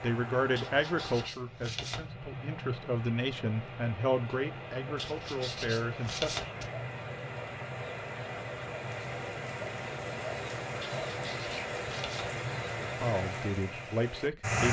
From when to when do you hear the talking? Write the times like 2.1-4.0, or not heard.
0.0-6.5, 12.8-14.6.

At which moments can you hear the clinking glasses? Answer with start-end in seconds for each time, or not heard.
not heard.